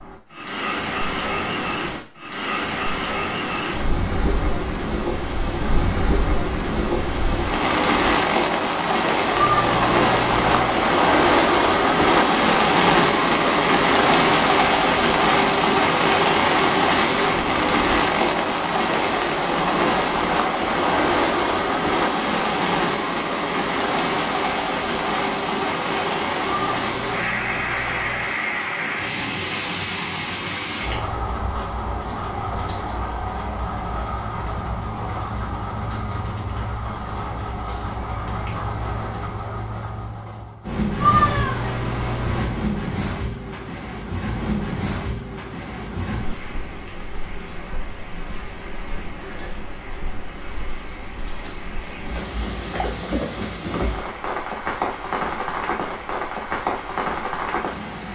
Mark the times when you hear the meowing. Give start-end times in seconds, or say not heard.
9.3-10.8, 26.4-28.4, 41.0-42.5.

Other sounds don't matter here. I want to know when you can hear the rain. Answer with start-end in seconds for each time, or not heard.
0.0-58.1.